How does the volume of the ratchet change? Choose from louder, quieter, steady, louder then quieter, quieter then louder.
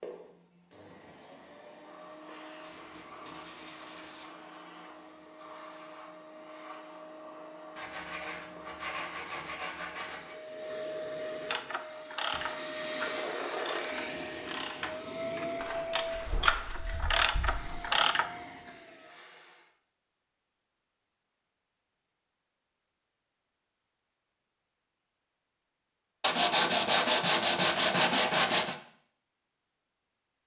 quieter then louder.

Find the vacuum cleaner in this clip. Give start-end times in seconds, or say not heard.
0.0-19.7.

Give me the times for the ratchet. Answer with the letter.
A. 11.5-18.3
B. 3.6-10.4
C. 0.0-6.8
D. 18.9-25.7
A.